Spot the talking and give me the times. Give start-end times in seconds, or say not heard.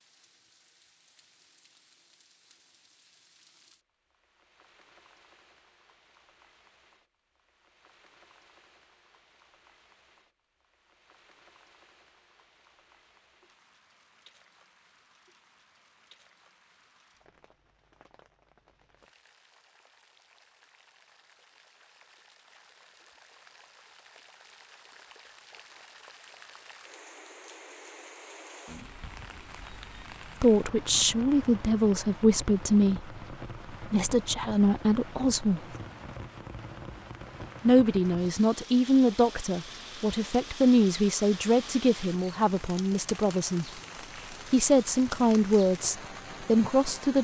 30.4-35.6, 37.6-43.6, 44.5-47.1.